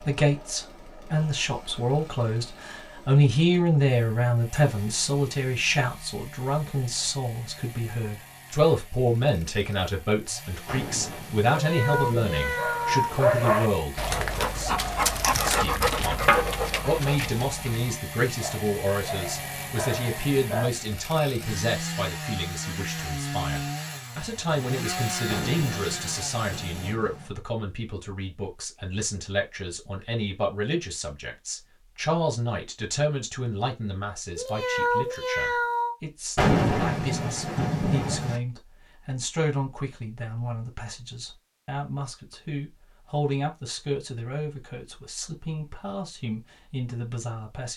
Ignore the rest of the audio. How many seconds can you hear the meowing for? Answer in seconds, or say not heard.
3 s.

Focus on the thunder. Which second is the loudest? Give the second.
37 s.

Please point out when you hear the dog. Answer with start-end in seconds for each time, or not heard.
12.6-20.7.